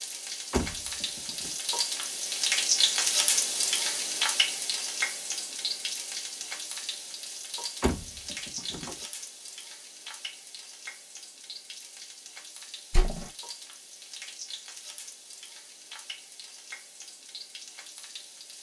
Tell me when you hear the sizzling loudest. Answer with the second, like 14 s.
3 s.